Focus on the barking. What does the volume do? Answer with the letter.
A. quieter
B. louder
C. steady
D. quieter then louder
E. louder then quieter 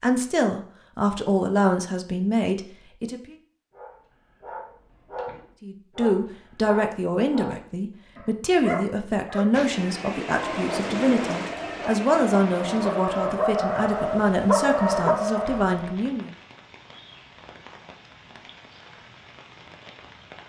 B.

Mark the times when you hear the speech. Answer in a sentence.
You can hear the speech from 0.0 to 3.4 s and from 5.6 to 16.3 s.